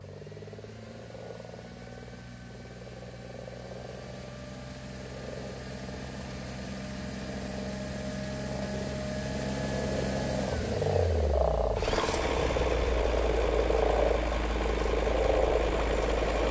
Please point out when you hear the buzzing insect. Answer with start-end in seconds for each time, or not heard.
not heard.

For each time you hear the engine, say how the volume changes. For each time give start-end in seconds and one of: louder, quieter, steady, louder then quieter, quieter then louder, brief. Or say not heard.
0.0-16.4 louder.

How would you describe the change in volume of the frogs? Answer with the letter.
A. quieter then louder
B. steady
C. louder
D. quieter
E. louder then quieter
C.